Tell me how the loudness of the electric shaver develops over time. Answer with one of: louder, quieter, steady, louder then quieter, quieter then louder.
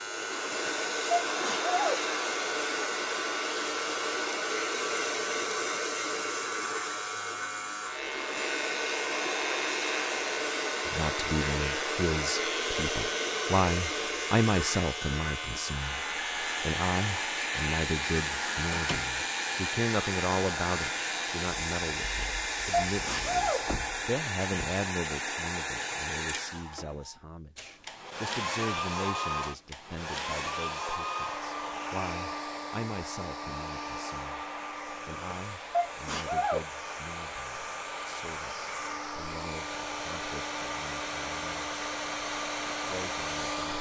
steady.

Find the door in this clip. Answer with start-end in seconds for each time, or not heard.
18.7-19.1, 23.6-24.8.